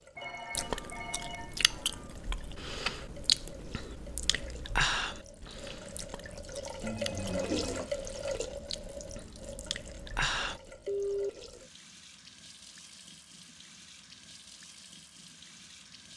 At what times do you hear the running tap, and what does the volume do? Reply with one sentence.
You can hear the running tap from 0.0 to 16.1 s, getting louder then quieter.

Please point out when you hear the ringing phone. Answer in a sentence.
The ringing phone can be heard from 0.1 to 2.1 s, from 6.8 to 7.9 s and from 10.8 to 11.3 s.